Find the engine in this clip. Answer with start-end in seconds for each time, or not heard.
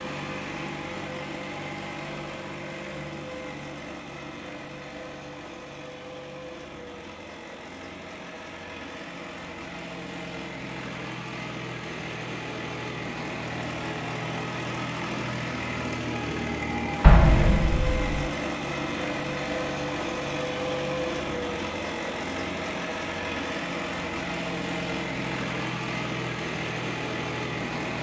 0.0-27.9.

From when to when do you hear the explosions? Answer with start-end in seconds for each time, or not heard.
17.0-18.1.